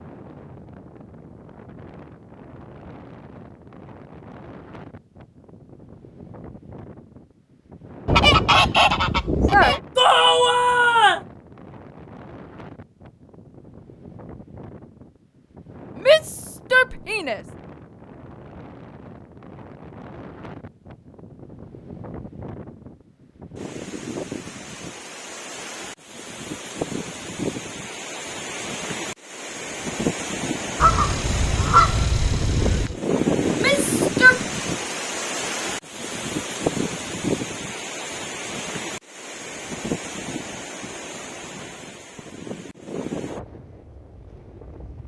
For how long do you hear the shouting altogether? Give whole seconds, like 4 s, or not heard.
4 s.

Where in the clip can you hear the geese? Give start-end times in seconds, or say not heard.
8.1-9.8, 30.8-33.0.